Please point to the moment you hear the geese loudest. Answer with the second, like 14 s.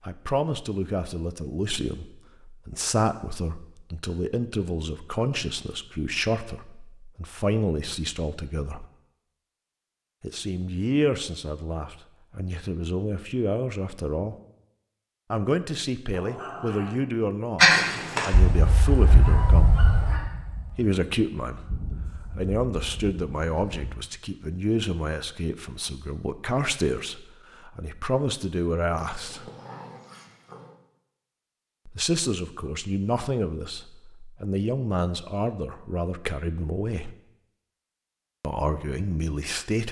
18 s.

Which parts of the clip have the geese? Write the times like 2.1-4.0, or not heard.
17.6-23.9.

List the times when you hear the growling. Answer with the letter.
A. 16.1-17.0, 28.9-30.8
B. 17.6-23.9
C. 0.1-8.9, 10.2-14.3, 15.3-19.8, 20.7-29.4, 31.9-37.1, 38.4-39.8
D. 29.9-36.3
A.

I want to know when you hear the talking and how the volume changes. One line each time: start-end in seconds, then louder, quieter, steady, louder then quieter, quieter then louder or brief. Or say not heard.
0.1-8.9 steady
10.2-14.3 quieter then louder
15.3-19.8 steady
20.7-29.4 steady
31.9-37.1 steady
38.4-39.8 brief.